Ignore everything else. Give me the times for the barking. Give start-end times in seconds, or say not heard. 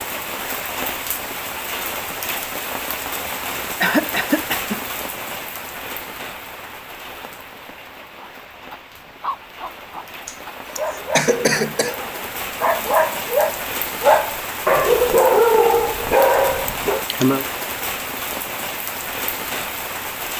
8.2-17.1.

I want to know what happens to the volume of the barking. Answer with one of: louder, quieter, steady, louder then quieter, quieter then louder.
louder.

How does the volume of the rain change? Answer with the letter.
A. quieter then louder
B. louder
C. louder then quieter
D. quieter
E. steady
A.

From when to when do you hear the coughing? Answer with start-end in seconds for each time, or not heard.
3.8-4.8, 10.2-11.9, 16.6-17.4.